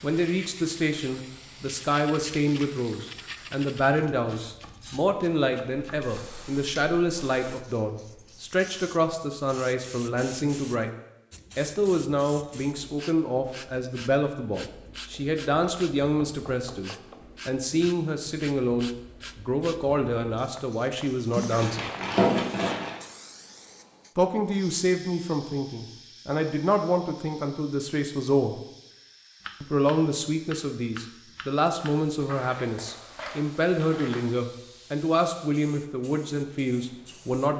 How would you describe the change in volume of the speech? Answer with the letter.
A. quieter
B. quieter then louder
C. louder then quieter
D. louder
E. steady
E.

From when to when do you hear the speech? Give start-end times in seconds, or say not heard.
0.0-10.9, 11.6-21.9, 24.1-28.6, 29.6-37.5.